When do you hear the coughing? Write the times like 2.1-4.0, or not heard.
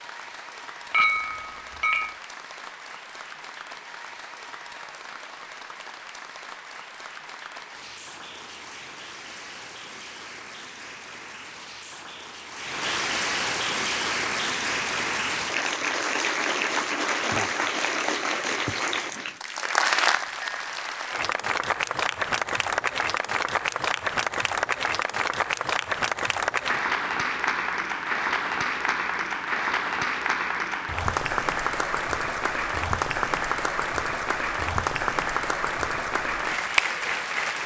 not heard.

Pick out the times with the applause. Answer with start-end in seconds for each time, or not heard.
0.0-37.6.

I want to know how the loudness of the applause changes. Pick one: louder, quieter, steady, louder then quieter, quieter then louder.
louder.